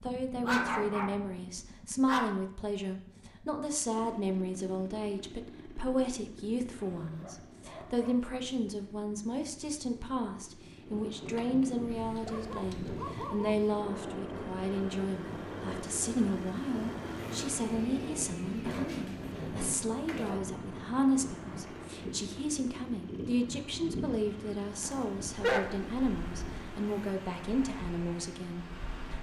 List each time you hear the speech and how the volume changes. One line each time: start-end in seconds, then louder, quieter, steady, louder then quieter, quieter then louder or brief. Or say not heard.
0.0-29.1 steady.